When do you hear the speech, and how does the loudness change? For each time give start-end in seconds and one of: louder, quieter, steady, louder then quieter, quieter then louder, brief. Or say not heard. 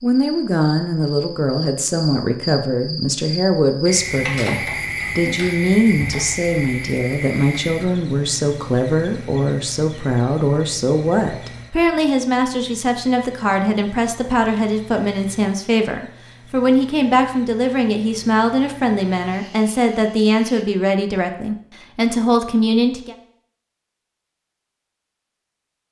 0.0-23.1 steady.